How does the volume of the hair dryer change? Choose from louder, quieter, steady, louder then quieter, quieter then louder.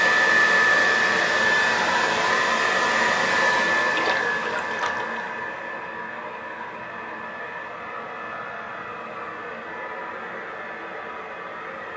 quieter.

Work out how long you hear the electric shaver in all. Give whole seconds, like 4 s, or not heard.
not heard.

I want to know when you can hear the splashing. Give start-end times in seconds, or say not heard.
4.0-5.2.